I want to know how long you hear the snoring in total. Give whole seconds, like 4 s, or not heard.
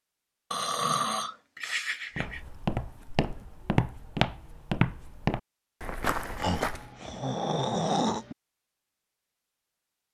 4 s.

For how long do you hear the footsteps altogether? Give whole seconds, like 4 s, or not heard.
5 s.